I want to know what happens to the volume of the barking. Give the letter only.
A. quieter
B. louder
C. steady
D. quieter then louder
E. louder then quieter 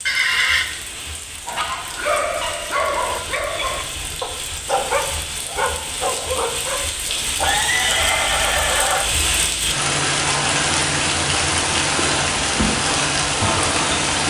C.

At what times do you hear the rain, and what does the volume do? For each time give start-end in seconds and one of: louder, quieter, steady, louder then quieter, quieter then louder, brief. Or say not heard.
0.0-14.2 louder.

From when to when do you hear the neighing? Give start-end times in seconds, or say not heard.
0.1-0.7, 7.3-9.1.